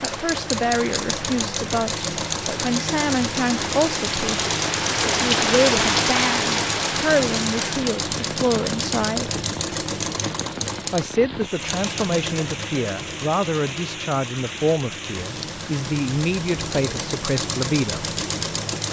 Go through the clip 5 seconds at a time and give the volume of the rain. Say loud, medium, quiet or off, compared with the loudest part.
medium, loud, medium, medium.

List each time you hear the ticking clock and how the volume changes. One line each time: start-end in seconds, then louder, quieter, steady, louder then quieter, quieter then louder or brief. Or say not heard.
not heard.